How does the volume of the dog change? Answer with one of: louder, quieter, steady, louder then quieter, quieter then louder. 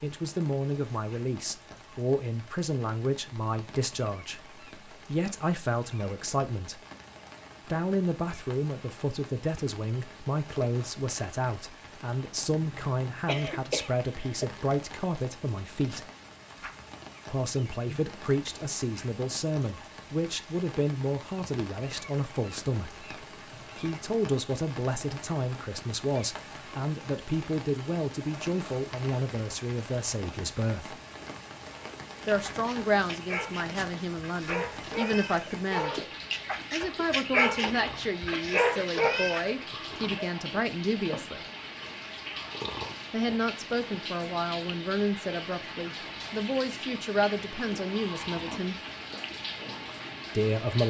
louder.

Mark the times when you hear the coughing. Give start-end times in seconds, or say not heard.
12.6-14.4, 37.6-39.0.